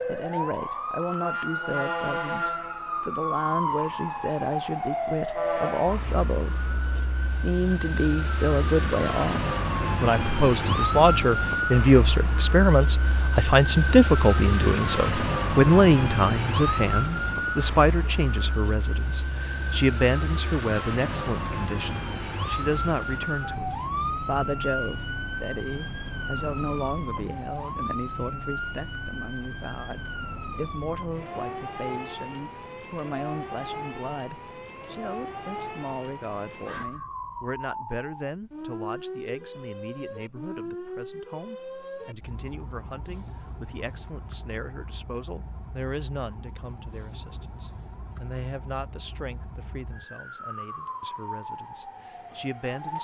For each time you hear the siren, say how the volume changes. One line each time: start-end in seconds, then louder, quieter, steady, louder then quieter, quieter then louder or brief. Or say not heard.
0.0-52.9 quieter.